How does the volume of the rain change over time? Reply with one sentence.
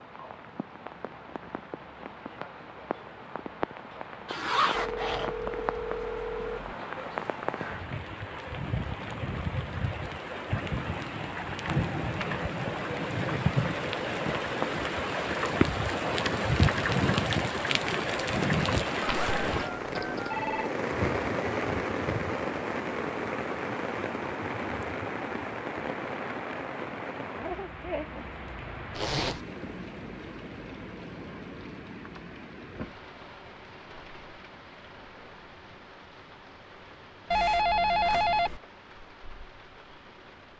The loudness of the rain goes up, then down.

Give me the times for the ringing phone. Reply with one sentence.
You can hear the ringing phone from 4.7 to 6.7 s, from 19.0 to 20.7 s and from 37.3 to 38.6 s.